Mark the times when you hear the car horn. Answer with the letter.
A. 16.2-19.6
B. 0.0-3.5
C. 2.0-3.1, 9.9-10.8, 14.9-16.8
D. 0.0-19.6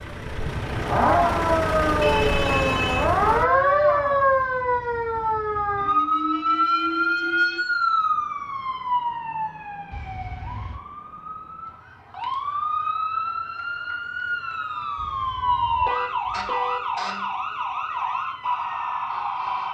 C.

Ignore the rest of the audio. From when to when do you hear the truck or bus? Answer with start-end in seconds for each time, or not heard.
0.0-3.5.